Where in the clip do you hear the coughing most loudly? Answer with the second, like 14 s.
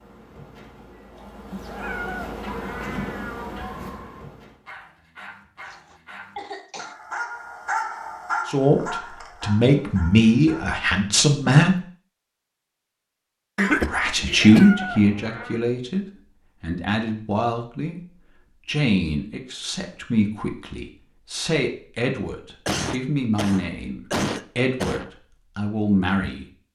14 s.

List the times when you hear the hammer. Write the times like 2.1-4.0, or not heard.
not heard.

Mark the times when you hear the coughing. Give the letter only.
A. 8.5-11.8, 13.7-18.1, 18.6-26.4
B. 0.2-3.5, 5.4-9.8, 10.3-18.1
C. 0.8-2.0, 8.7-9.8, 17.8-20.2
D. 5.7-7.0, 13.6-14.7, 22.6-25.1
D.